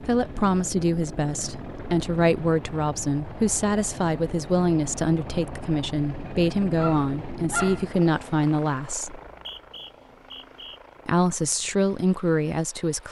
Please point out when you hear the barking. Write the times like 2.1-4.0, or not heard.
6.2-7.8.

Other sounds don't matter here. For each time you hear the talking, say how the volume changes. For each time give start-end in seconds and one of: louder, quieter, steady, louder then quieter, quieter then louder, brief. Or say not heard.
0.1-9.2 steady
11.1-13.0 brief.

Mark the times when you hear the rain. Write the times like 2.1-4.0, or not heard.
not heard.